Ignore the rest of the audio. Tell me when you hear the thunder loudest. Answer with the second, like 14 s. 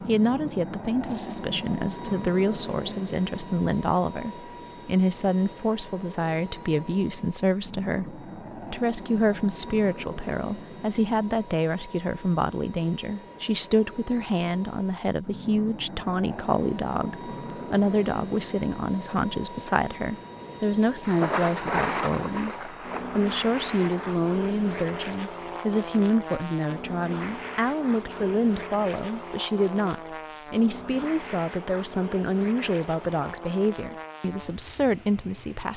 22 s.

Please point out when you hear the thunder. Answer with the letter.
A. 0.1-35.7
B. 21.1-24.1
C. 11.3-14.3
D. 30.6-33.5
B.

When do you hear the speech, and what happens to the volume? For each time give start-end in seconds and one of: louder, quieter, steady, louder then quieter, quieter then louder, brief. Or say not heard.
0.1-35.7 steady.